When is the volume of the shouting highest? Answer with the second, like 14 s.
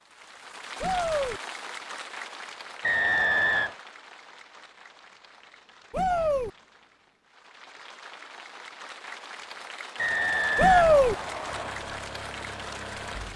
11 s.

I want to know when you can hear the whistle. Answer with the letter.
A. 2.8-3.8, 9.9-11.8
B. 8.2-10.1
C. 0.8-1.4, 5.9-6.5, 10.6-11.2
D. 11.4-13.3
A.